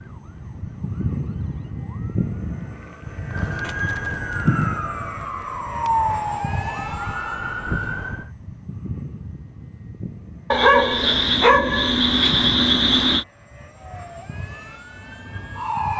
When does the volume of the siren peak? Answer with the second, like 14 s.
6 s.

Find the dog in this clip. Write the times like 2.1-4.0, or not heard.
10.5-13.2.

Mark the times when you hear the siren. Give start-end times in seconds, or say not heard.
0.0-8.3, 13.8-15.9.